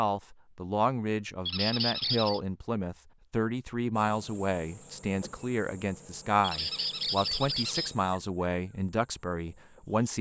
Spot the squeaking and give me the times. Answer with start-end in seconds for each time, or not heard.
1.4-2.4, 6.4-8.0.